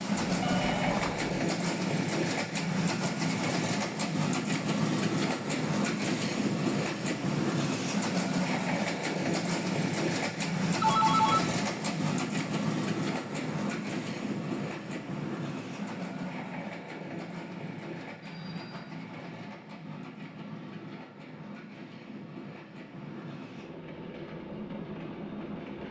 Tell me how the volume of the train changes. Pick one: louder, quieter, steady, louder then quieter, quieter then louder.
quieter.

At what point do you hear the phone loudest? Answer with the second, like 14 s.
11 s.